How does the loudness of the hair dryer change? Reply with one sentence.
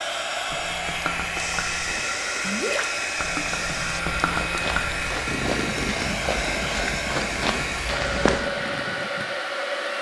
The loudness of the hair dryer stays about the same.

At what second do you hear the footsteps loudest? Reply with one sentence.
The loudest moment of the footsteps is at 8 seconds.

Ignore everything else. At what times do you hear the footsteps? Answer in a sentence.
The footsteps can be heard from 1.3 to 8.4 s.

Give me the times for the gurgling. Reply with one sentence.
You can hear the gurgling from 0.5 to 9.2 s.